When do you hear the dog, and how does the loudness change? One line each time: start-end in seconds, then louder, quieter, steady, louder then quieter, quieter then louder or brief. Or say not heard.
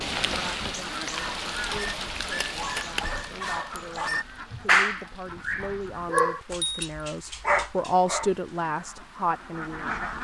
1.1-8.3 louder then quieter.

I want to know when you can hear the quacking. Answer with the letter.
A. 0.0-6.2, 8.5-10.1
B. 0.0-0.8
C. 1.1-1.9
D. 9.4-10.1
A.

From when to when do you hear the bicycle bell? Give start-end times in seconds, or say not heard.
6.2-6.9.